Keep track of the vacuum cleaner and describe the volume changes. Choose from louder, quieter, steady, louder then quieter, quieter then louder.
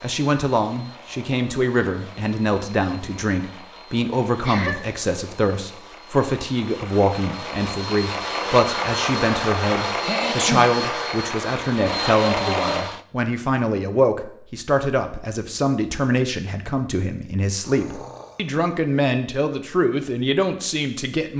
louder.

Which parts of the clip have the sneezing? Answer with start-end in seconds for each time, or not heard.
4.3-4.8, 10.0-10.7, 17.6-18.6.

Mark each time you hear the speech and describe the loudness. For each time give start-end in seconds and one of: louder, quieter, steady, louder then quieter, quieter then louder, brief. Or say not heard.
0.0-21.3 steady.